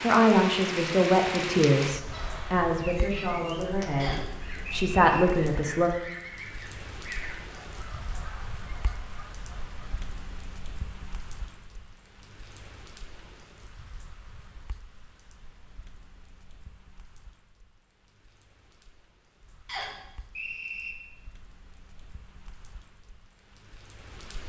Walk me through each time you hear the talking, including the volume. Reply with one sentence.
You can hear the talking from 0.0 to 5.9 s, getting quieter then louder.